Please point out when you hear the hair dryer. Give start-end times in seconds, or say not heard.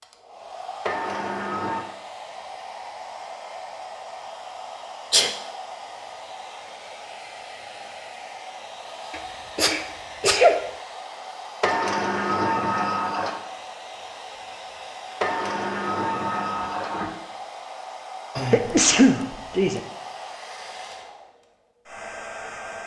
0.0-22.8.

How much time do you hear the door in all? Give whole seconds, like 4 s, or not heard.
5 s.